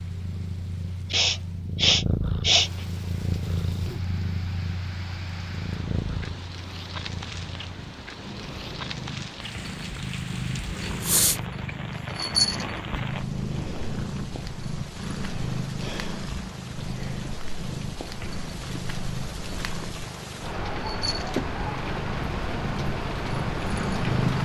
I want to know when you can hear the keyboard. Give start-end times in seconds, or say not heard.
not heard.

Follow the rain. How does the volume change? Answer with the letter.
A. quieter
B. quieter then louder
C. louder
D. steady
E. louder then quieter
C.